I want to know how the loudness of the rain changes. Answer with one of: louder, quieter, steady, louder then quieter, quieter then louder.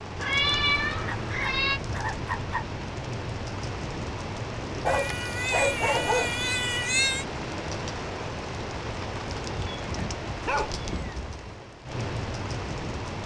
steady.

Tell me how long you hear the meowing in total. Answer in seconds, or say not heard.
6 s.